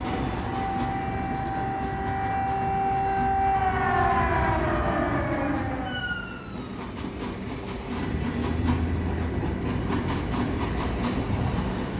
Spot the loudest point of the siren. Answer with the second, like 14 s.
4 s.